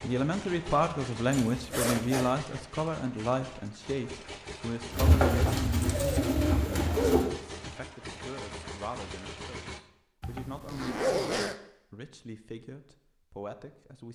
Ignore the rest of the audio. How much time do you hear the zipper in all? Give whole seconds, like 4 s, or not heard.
3 s.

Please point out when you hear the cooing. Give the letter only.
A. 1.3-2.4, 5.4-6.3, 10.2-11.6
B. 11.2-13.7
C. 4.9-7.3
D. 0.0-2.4
C.